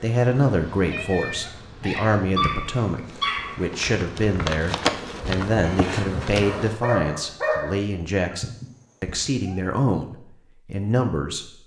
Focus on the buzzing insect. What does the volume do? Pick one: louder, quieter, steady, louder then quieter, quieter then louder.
louder.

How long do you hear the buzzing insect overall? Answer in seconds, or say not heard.
7 s.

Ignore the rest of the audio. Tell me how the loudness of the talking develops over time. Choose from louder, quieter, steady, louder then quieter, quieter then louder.
steady.